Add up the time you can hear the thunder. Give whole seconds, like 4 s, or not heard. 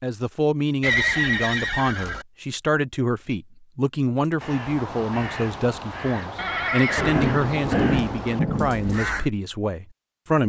2 s.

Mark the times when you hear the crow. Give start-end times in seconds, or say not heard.
4.4-9.3.